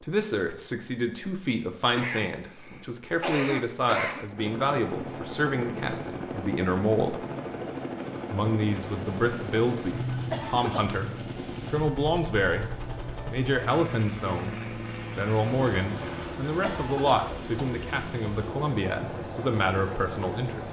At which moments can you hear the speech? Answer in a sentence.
The speech can be heard from 0.0 to 7.2 s, from 8.3 to 12.7 s, from 13.2 to 14.6 s and from 15.2 to 20.6 s.